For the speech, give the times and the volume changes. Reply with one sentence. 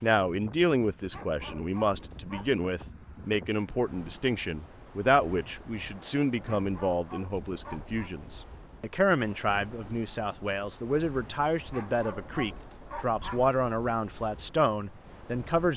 The speech can be heard from 0.0 to 15.7 s, at a steady volume.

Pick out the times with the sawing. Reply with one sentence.
You can't hear the sawing here.